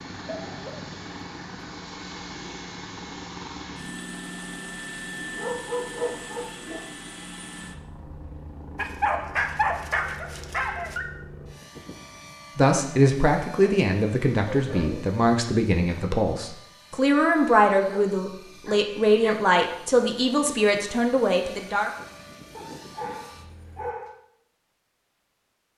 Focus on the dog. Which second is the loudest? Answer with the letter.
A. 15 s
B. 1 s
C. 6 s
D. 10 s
D.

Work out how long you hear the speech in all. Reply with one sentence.
The speech can be heard for 9 seconds in total.